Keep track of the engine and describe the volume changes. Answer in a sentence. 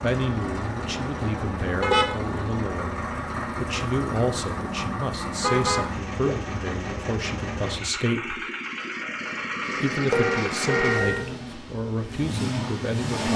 The loudness of the engine stays about the same.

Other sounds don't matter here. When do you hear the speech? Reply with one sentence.
You can hear the speech from 0.0 to 8.4 s and from 9.8 to 13.3 s.